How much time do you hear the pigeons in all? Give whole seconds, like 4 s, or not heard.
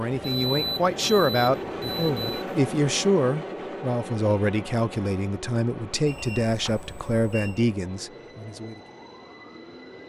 not heard.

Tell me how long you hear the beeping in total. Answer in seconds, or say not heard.
4 s.